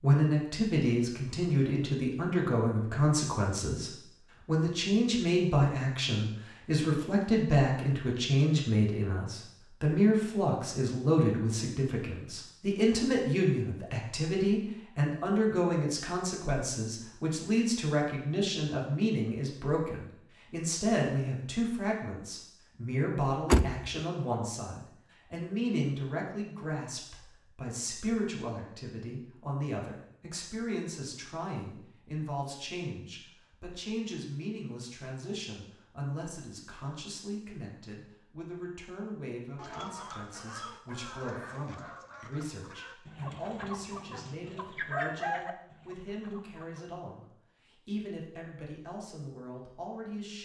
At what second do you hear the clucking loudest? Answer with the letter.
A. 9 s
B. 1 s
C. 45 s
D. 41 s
C.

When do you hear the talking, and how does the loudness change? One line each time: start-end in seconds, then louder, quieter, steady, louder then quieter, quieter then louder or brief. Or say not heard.
0.0-50.4 quieter.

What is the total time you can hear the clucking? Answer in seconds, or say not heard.
7 s.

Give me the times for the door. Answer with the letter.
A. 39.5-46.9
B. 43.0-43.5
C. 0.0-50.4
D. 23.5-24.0
D.